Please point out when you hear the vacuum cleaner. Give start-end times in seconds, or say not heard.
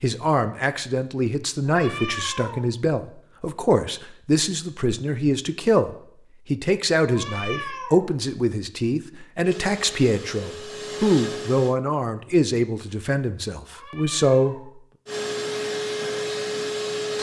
9.4-11.8, 15.1-17.1.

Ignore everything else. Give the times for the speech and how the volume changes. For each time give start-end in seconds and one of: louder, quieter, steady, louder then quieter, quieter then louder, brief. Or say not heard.
0.0-14.7 steady.